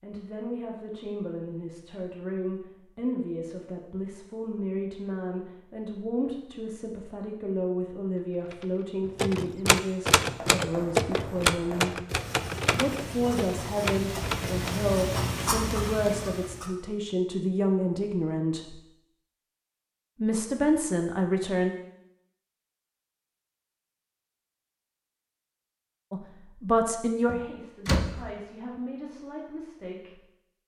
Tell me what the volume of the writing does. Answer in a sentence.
The volume of the writing goes up.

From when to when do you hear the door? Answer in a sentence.
The door can be heard from 27.2 to 28.3 s.